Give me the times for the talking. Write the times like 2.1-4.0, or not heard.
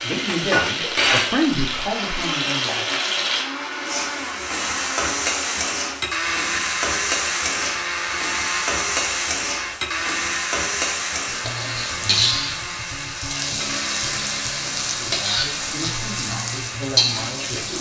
0.0-3.0, 14.8-17.7.